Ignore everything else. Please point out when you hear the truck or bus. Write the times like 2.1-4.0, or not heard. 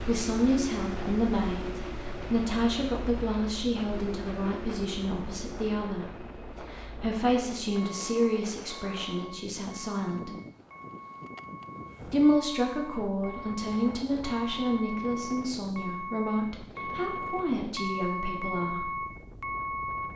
0.0-20.1.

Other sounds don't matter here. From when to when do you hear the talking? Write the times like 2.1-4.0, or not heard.
0.1-10.3, 12.1-18.9.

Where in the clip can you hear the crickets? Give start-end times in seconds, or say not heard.
not heard.